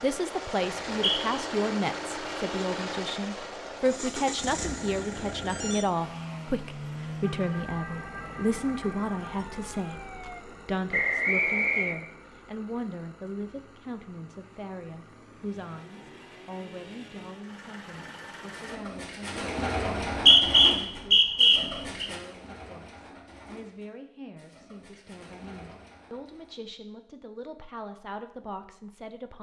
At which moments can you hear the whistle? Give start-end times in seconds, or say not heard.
0.6-1.4, 10.9-11.9, 20.0-22.1.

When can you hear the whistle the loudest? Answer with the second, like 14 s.
20 s.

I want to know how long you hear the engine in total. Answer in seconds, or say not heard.
19 s.